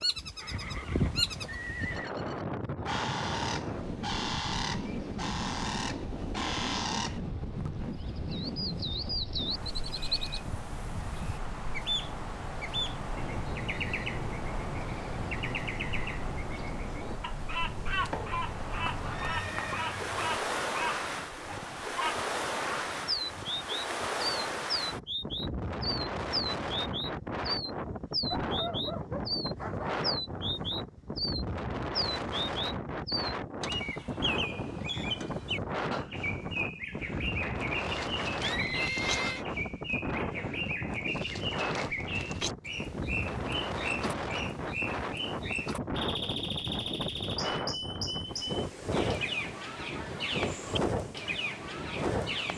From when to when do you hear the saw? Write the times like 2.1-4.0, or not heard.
not heard.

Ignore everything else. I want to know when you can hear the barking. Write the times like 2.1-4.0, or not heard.
28.2-30.1.